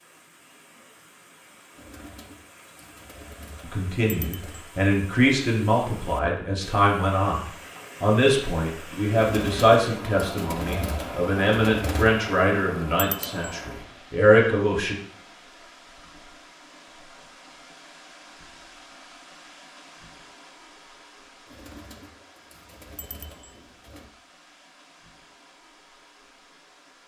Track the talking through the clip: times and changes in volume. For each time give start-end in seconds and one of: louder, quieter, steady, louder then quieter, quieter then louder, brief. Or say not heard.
3.6-14.9 steady.